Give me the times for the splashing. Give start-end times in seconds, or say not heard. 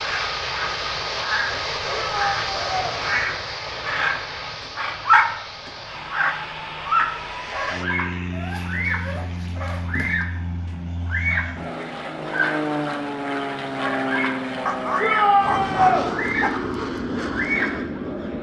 not heard.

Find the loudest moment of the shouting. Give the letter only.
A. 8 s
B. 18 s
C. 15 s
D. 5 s
C.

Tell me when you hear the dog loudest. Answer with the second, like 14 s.
15 s.